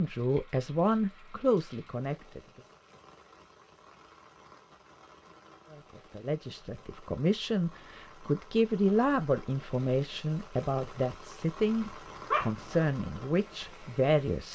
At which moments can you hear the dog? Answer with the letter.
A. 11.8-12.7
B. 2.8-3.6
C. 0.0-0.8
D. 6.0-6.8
A.